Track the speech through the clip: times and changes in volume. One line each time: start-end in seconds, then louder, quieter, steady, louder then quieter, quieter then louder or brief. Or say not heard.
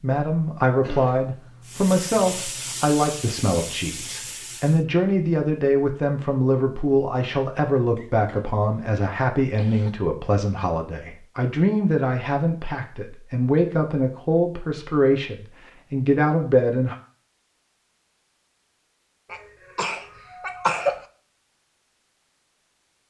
0.0-16.9 steady.